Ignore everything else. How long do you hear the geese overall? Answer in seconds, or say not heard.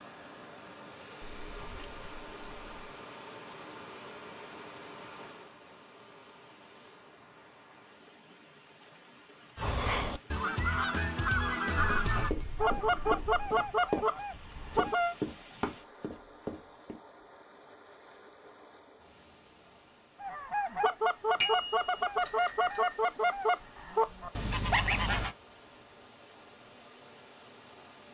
11 s.